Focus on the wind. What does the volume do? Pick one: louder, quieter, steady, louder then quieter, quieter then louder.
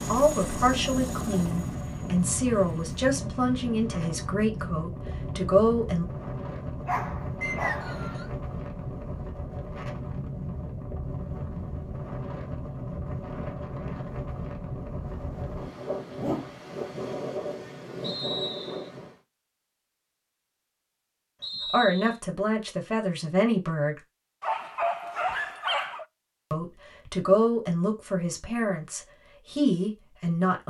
steady.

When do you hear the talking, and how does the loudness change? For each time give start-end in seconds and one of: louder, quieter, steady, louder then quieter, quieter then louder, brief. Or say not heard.
0.1-6.0 steady
21.6-24.0 brief
26.5-30.6 quieter then louder.